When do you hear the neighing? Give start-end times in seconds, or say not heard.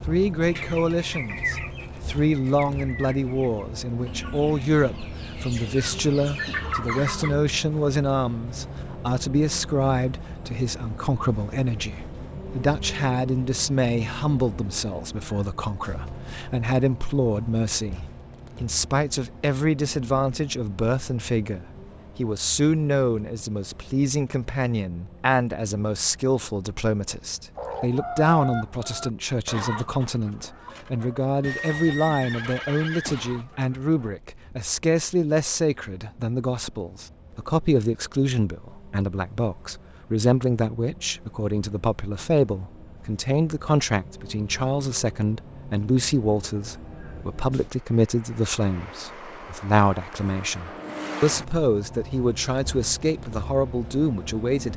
6.5-7.2, 31.4-33.5.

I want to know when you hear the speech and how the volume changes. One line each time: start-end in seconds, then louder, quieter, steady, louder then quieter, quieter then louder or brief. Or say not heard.
0.1-54.7 steady.